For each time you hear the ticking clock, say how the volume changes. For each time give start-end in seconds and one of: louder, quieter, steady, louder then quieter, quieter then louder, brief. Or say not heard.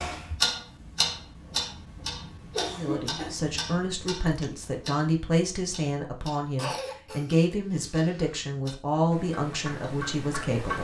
0.0-10.8 quieter then louder.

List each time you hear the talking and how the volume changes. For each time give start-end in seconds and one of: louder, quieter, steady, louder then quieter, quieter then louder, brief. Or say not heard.
2.7-10.8 steady.